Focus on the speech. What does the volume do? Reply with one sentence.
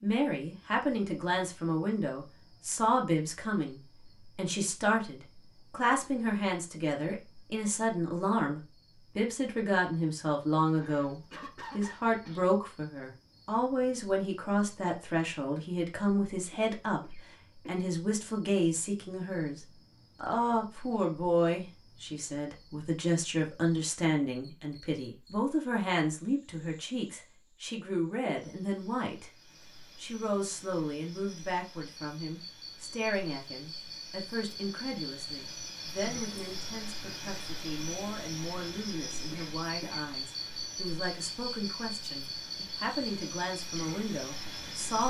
The loudness of the speech goes down.